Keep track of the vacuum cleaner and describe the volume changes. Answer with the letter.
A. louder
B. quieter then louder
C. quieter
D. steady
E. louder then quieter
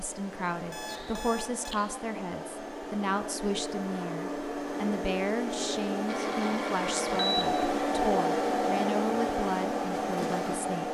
A.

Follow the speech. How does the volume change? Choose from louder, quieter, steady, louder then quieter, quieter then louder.
steady.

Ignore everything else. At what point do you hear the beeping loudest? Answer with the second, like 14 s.
7 s.